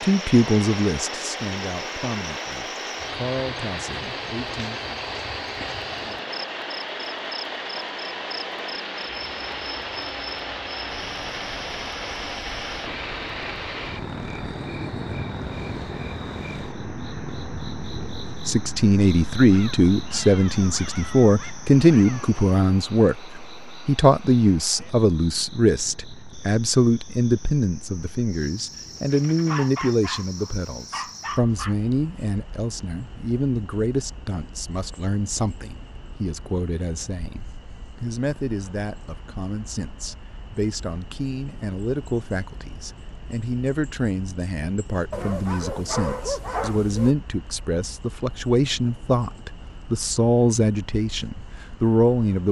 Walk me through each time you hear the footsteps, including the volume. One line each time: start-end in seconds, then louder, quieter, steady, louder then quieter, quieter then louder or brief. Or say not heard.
not heard.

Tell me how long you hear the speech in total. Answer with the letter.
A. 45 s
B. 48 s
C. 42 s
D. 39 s
D.